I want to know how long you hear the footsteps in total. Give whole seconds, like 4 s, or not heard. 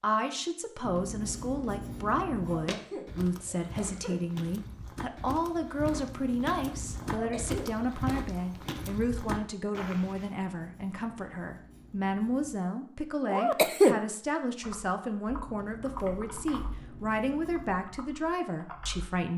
8 s.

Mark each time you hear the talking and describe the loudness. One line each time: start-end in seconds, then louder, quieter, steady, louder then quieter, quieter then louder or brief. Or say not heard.
0.0-19.3 steady.